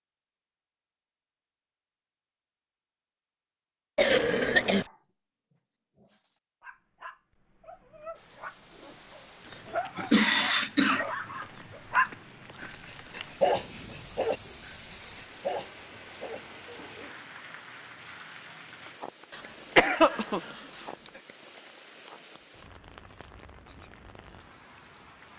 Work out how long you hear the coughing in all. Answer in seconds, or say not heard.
4 s.